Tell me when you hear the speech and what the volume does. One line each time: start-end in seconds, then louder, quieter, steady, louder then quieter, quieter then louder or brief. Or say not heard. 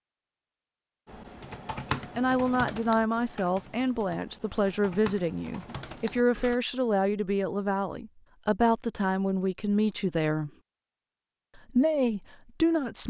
2.1-10.5 steady
11.6-13.0 brief.